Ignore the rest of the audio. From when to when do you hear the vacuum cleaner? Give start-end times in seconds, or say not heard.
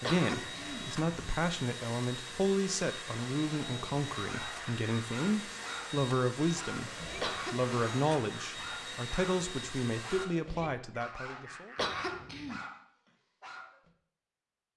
0.0-10.3.